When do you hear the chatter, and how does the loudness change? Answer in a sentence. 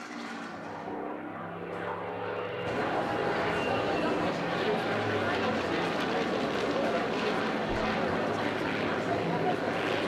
The chatter can be heard from 2.6 to 10.0 s, at a steady volume.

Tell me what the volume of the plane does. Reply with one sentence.
The volume of the plane stays about the same.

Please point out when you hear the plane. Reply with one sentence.
You can hear the plane from 0.0 to 10.0 s.